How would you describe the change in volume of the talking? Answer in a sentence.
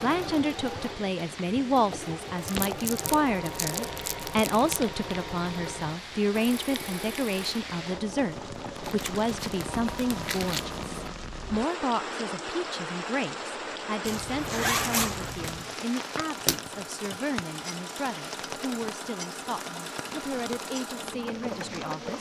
The loudness of the talking goes down.